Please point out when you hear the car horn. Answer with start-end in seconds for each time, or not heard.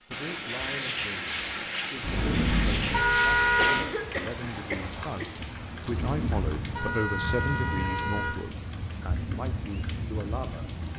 2.0-3.9, 5.8-8.3.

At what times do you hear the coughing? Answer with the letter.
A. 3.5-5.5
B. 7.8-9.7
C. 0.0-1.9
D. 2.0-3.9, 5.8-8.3
A.